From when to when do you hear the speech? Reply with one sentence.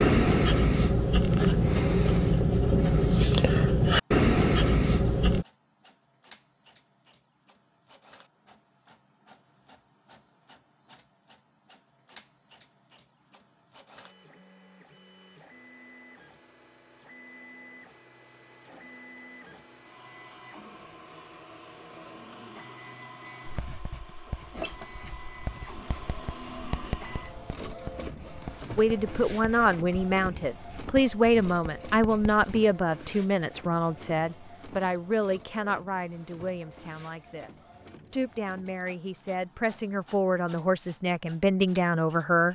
You can hear the speech from 28.8 to 42.4 s.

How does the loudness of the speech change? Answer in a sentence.
The volume of the speech goes down, then up.